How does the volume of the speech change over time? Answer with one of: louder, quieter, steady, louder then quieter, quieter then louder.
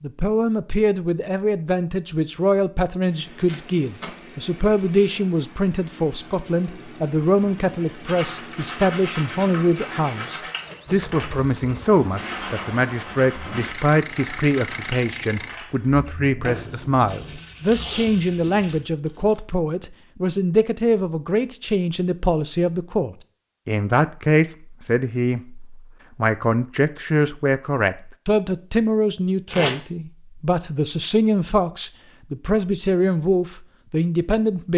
steady.